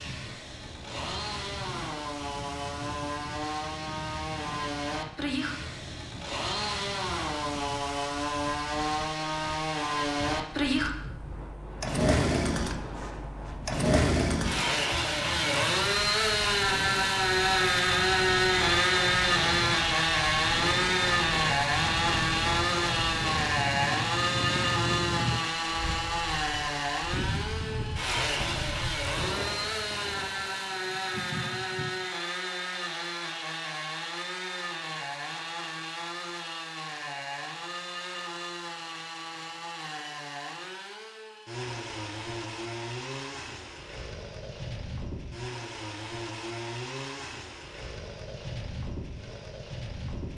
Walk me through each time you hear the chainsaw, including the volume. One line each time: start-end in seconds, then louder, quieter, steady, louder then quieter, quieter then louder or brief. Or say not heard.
0.0-50.3 louder then quieter.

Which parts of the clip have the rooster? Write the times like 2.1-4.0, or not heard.
30.4-31.9.